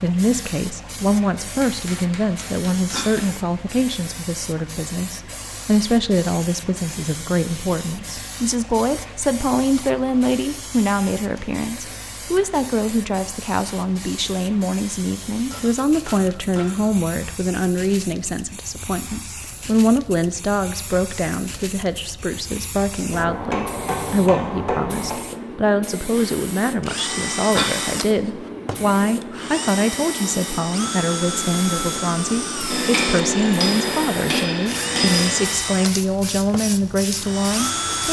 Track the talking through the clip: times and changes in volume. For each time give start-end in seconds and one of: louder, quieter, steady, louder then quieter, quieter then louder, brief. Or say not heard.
0.0-38.0 steady.